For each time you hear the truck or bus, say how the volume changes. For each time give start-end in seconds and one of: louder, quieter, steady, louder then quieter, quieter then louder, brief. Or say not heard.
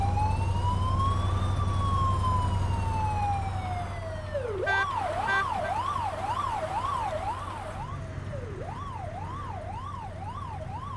0.0-10.9 quieter.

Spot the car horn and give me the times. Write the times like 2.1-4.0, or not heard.
4.7-5.8.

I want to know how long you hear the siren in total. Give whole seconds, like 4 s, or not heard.
11 s.